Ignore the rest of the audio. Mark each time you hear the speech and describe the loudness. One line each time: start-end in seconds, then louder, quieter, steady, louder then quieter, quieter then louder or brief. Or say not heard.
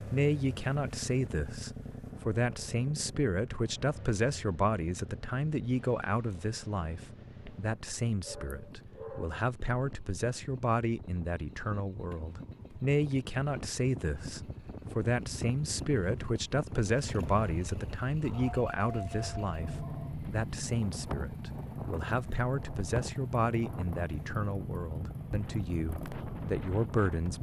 0.0-27.3 steady.